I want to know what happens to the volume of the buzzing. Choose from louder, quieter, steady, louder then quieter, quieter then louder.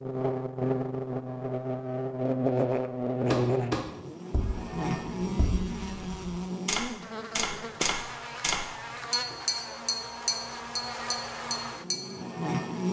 quieter.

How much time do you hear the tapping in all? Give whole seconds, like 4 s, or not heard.
9 s.